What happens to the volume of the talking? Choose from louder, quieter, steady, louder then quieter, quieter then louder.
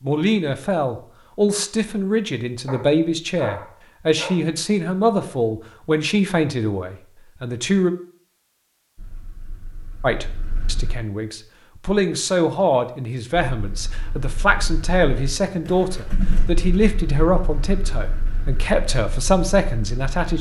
steady.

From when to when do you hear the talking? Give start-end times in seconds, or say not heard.
0.0-8.0, 10.0-20.3.